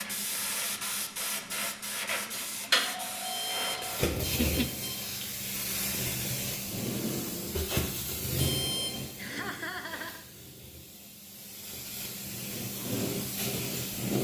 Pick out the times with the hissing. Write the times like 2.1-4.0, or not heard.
0.0-14.1.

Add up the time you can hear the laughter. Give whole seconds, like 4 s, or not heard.
2 s.